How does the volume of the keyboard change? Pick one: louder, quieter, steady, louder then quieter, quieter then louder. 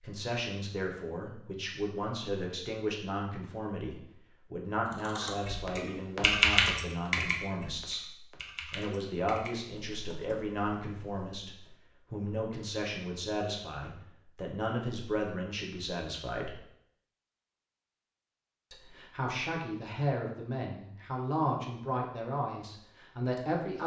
quieter.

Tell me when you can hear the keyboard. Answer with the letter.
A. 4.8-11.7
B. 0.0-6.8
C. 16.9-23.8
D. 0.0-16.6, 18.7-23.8
A.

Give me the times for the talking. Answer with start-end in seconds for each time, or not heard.
0.0-16.6, 18.7-23.8.